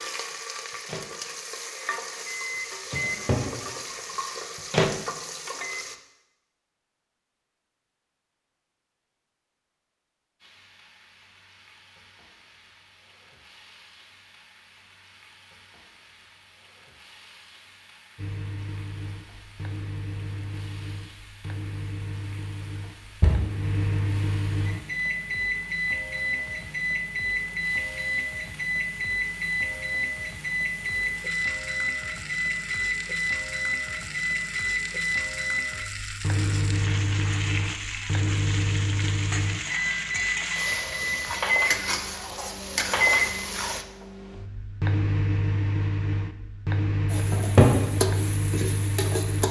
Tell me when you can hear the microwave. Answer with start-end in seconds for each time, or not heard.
0.0-5.8, 18.1-49.4.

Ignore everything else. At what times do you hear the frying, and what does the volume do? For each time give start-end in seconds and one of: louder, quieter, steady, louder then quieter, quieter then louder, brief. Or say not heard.
0.0-6.0 steady
10.4-43.9 louder
47.0-49.4 brief.